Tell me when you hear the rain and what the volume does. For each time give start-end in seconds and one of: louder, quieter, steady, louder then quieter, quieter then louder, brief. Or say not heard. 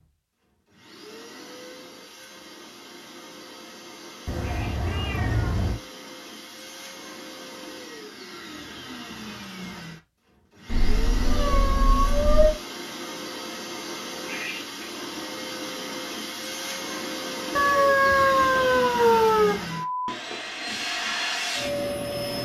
not heard.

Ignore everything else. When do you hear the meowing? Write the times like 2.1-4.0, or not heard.
4.2-5.8, 10.7-12.6, 17.6-19.6.